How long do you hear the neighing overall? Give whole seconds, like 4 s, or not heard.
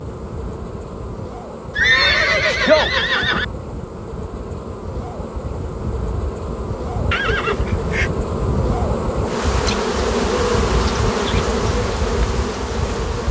3 s.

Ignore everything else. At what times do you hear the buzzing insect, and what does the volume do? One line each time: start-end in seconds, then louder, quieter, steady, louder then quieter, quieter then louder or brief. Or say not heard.
0.0-13.2 louder.